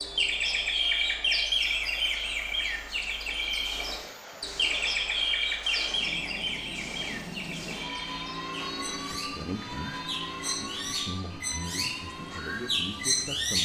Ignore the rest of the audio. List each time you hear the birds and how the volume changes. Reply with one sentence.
The birds can be heard from 0.0 to 13.6 s, getting quieter then louder.